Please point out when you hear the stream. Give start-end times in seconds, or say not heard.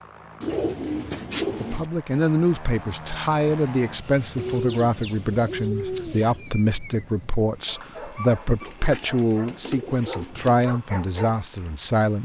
not heard.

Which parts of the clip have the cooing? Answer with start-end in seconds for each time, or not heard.
0.4-1.9, 4.3-6.5, 8.6-10.7.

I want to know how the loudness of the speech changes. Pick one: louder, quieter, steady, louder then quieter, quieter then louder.
steady.